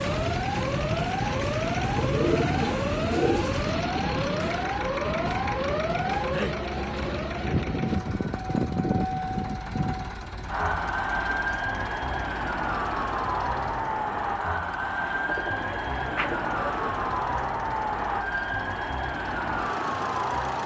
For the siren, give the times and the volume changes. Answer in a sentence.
You can hear the siren from 0.0 to 20.6 s, at a steady volume.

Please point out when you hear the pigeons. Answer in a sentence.
The pigeons can be heard from 2.0 to 3.5 s and from 15.2 to 16.9 s.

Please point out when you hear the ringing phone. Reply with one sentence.
The ringing phone can't be heard in this clip.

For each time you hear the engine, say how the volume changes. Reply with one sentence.
The engine can be heard from 0.0 to 20.6 s, getting quieter.